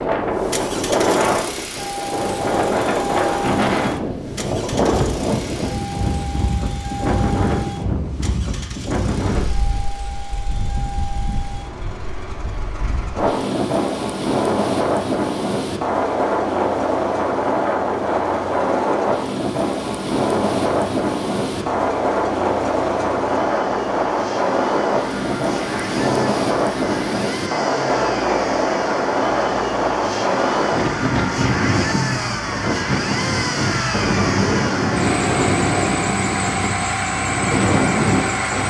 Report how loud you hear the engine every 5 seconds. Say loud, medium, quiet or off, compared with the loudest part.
medium, medium, quiet, quiet, medium, medium, loud, loud.